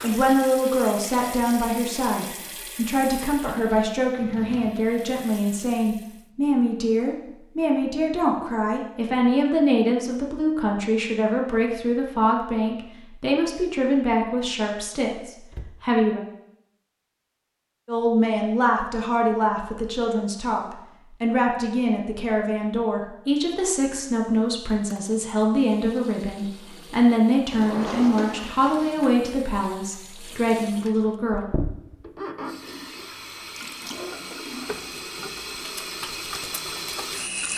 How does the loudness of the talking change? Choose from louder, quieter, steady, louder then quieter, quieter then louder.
steady.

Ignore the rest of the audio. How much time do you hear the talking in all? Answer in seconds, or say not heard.
30 s.